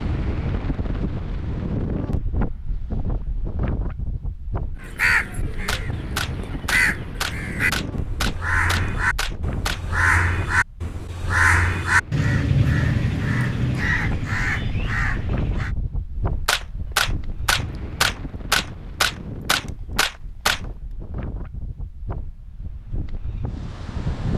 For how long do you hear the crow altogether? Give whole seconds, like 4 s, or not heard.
11 s.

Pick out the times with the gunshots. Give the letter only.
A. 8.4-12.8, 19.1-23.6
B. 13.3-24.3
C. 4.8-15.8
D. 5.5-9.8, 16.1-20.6
D.